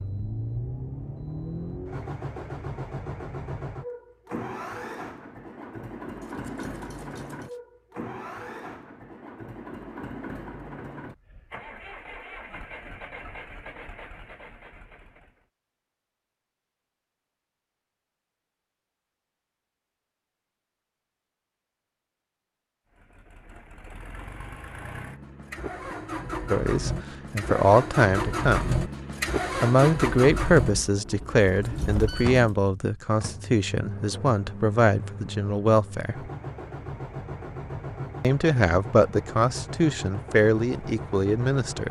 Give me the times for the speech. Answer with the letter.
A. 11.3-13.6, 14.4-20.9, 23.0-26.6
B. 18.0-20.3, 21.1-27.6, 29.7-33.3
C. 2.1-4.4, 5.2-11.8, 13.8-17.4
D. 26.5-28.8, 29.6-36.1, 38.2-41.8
D.